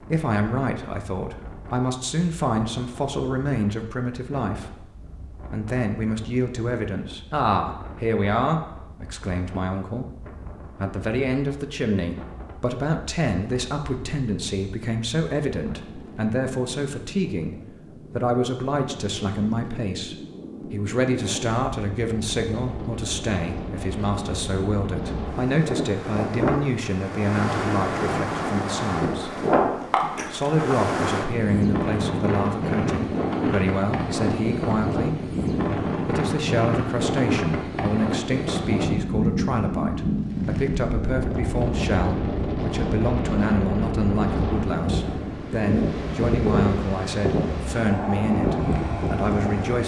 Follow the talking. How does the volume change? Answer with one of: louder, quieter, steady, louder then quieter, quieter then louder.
steady.